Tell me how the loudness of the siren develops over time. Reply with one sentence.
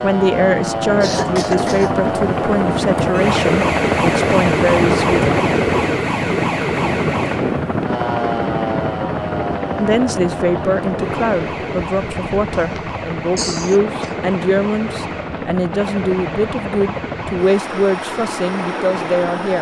The volume of the siren goes down.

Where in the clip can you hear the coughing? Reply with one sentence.
You can hear the coughing from 1.0 to 1.9 s and from 12.8 to 14.1 s.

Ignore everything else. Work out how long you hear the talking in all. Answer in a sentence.
You can hear the talking for 15 seconds altogether.